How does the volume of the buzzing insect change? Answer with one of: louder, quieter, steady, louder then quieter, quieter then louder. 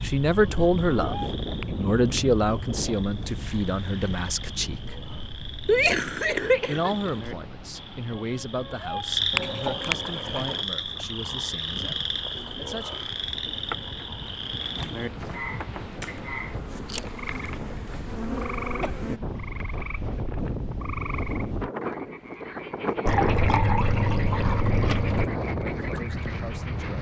louder.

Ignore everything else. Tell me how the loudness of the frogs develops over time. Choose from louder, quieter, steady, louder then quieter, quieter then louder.
louder then quieter.